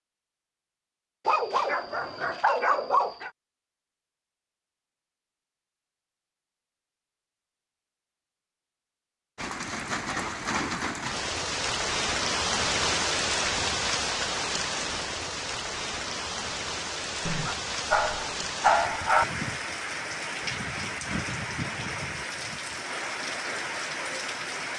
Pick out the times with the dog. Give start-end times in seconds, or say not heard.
1.2-3.3, 17.2-19.2.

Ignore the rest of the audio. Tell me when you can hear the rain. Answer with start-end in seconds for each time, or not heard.
9.3-24.7.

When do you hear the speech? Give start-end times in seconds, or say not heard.
not heard.